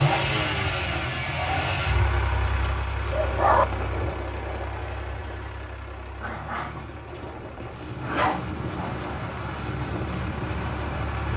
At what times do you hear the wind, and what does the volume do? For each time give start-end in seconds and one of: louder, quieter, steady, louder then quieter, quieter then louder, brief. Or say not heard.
3.1-11.3 quieter then louder.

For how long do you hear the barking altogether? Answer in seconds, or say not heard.
4 s.